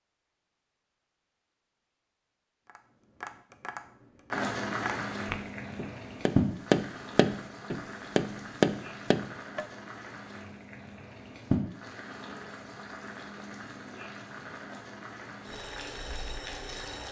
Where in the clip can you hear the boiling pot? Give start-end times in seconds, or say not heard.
4.3-17.0.